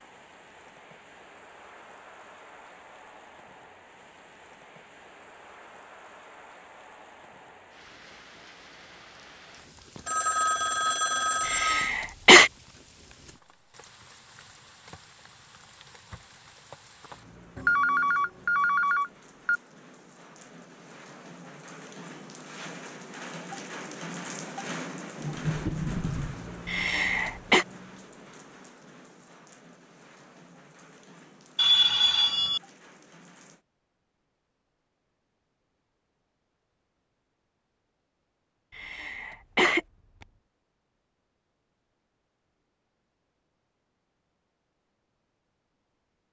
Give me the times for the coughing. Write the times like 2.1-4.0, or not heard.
11.4-12.5, 26.6-27.6, 38.8-39.8.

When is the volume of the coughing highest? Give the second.
12 s.